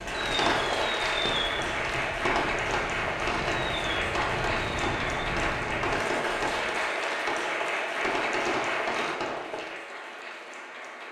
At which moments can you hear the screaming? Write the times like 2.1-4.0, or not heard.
not heard.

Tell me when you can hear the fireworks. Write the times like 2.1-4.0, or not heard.
0.1-9.8.